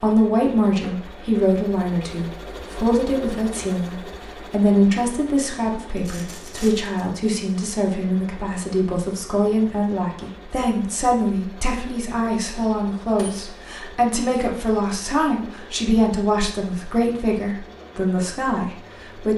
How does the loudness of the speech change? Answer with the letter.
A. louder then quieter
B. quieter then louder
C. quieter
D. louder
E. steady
E.